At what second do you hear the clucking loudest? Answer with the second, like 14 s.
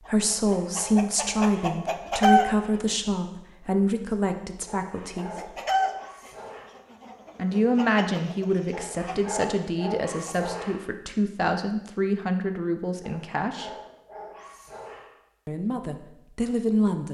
2 s.